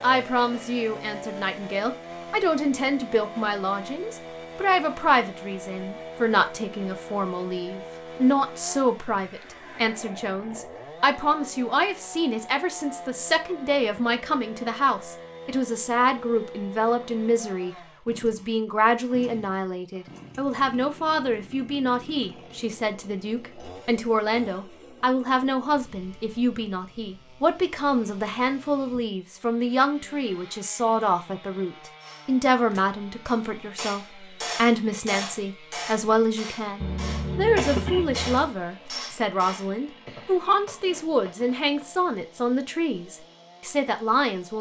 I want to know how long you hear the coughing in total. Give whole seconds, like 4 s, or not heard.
2 s.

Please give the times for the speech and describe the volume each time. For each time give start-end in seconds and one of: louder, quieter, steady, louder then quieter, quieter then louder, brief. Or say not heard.
0.0-44.5 steady.